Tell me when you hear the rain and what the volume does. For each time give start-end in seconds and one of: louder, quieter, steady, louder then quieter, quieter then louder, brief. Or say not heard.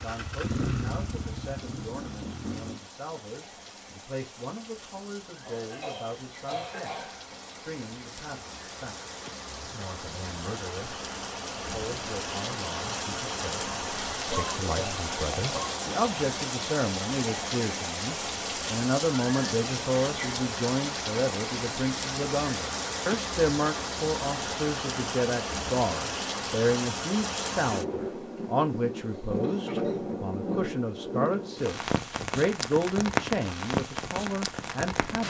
0.0-35.2 louder.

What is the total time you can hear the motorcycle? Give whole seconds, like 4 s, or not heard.
3 s.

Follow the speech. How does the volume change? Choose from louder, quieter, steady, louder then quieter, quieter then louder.
louder.